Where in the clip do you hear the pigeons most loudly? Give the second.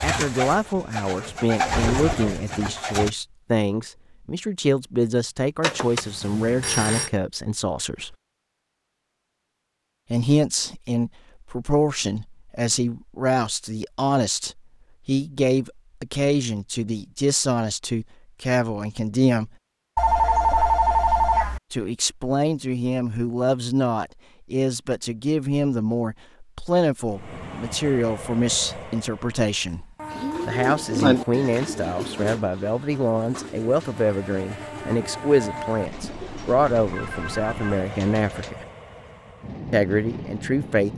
31 s.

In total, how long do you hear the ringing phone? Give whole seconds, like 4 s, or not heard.
5 s.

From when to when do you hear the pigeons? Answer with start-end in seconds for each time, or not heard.
0.0-3.1, 30.1-38.5.